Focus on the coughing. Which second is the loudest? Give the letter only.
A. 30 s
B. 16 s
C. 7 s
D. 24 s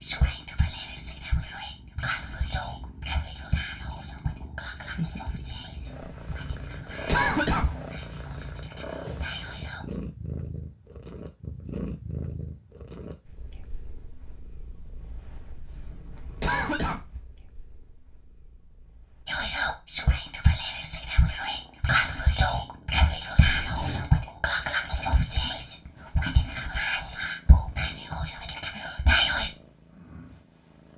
C.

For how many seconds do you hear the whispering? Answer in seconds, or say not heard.
20 s.